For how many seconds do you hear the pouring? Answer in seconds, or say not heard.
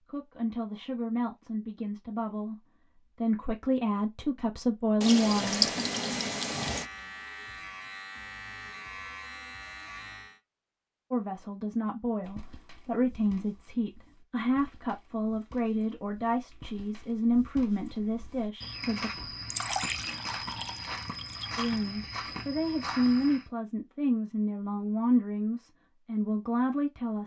4 s.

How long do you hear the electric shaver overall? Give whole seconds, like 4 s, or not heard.
5 s.